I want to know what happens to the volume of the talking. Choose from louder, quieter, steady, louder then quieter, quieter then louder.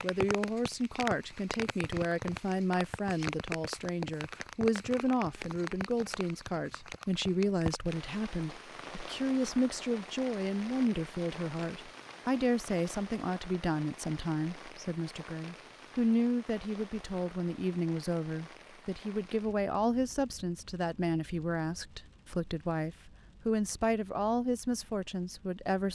steady.